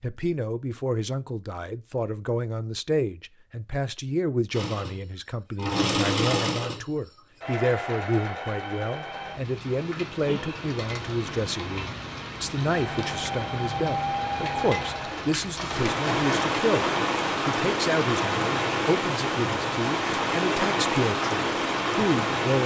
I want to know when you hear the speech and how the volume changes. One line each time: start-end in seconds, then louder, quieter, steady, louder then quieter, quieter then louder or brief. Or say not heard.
0.0-22.6 steady.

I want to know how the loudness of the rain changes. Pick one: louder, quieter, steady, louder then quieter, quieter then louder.
louder.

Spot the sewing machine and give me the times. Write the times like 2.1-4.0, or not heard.
4.5-9.3, 12.7-16.5.